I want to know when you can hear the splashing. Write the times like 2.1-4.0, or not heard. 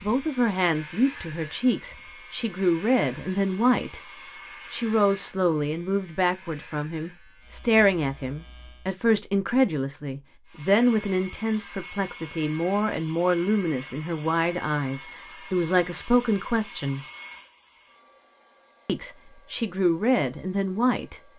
not heard.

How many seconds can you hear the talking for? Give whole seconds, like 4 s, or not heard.
19 s.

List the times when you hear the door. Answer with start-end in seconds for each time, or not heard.
not heard.